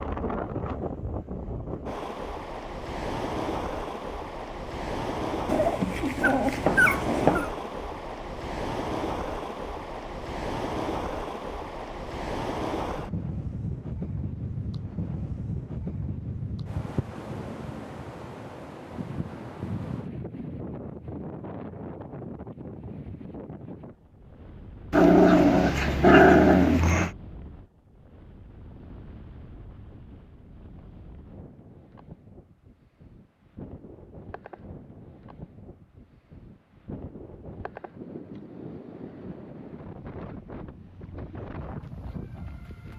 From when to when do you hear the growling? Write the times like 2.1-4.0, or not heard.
5.5-7.5, 24.9-27.1.